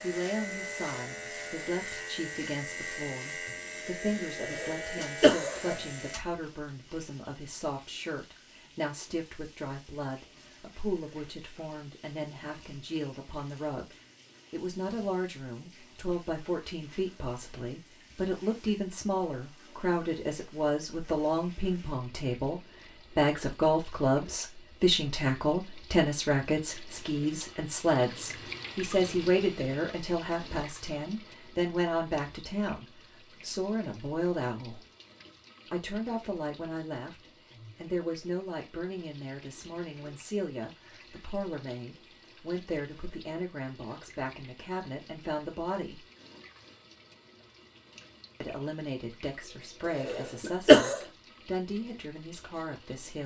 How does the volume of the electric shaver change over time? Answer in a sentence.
The loudness of the electric shaver stays about the same.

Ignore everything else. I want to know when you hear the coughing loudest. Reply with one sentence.
The loudest moment of the coughing is at 51 seconds.